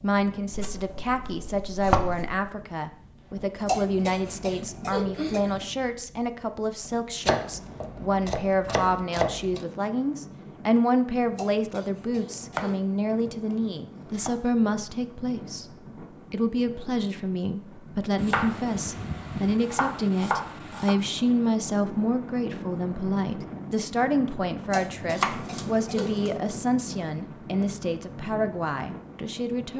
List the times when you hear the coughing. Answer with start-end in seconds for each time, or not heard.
3.6-5.7, 11.3-12.8, 24.7-26.2.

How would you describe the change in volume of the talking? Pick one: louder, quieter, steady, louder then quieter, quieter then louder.
steady.